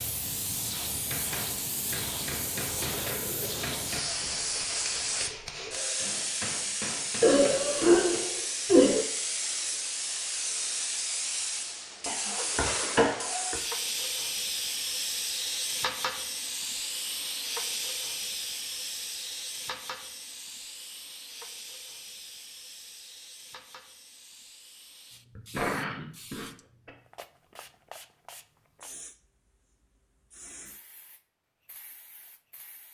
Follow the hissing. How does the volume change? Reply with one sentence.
The loudness of the hissing goes down.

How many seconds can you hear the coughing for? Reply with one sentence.
You can hear the coughing for 5 seconds altogether.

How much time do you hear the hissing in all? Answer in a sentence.
The hissing can be heard for 33 seconds in total.